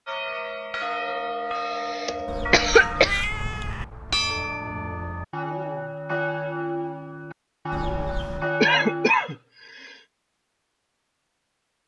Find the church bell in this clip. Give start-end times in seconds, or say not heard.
0.1-9.1.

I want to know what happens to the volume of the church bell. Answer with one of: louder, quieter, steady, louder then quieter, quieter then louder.
steady.